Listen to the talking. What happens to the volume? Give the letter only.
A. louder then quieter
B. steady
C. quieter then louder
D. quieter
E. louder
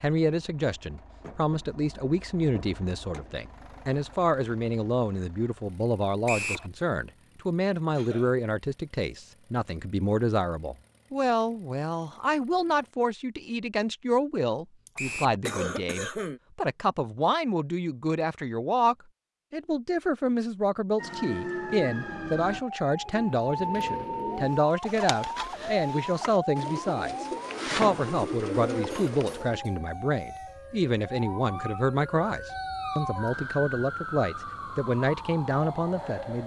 B.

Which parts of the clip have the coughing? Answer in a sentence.
You can hear the coughing from 8.0 to 8.4 s, from 14.8 to 16.4 s and from 28.9 to 30.6 s.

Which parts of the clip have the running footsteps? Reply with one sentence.
You can't hear the running footsteps here.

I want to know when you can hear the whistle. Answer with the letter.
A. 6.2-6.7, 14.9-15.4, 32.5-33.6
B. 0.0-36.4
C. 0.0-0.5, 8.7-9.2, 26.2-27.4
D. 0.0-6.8
A.